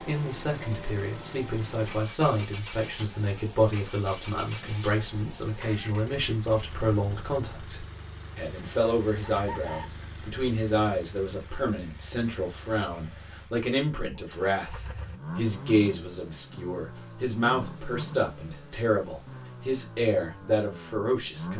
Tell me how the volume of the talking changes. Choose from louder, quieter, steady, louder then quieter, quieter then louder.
steady.